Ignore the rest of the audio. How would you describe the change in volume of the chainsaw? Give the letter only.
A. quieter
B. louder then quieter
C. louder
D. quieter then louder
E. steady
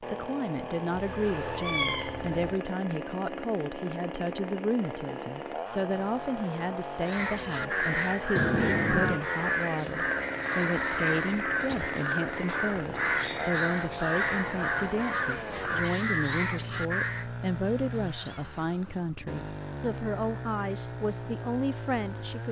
E.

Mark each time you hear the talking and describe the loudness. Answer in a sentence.
You can hear the talking from 0.0 to 22.4 s, at a steady volume.